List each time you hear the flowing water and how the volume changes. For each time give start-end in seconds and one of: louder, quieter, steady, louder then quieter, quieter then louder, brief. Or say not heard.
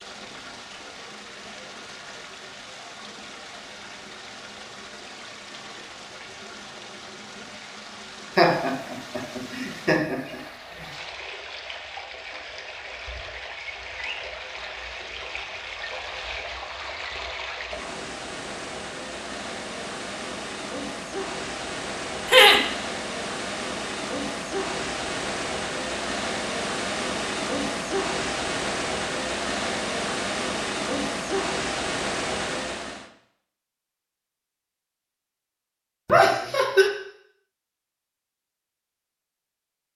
0.0-33.1 louder.